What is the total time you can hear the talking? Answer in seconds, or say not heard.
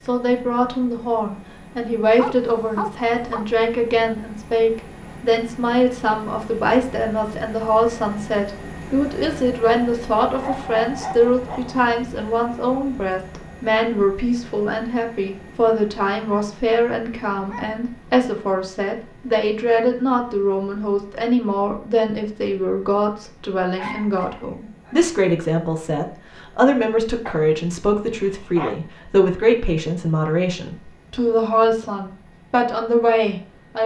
34 s.